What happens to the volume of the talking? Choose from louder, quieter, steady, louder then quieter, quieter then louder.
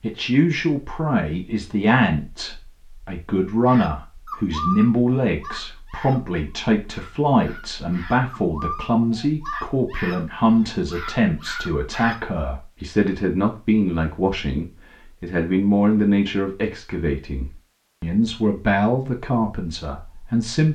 steady.